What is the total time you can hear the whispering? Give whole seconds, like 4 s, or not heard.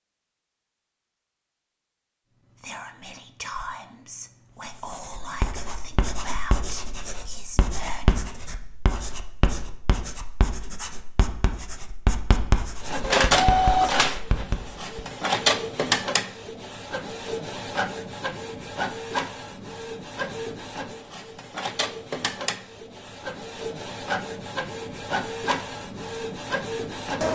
6 s.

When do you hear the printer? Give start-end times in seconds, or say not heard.
12.8-27.2.